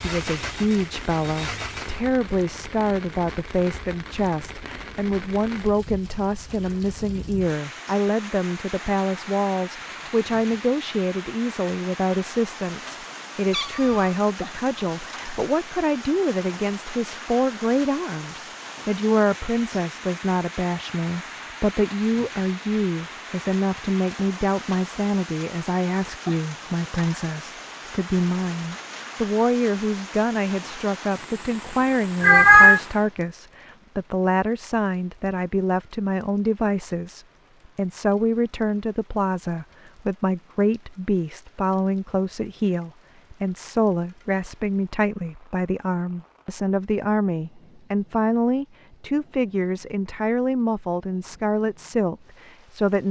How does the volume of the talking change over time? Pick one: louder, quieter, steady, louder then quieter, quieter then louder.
steady.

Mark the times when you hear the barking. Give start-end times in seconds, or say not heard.
not heard.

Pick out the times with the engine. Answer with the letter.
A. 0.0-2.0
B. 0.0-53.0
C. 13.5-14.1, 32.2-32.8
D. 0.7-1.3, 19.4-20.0
A.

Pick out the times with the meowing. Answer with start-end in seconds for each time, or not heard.
13.5-14.1, 32.2-32.8.